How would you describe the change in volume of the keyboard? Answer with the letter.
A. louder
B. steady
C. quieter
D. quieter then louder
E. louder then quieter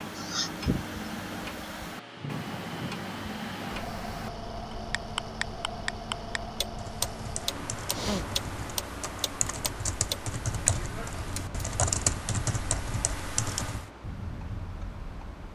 A.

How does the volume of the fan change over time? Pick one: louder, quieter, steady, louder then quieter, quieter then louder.
quieter.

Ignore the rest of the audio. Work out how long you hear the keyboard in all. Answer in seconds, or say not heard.
7 s.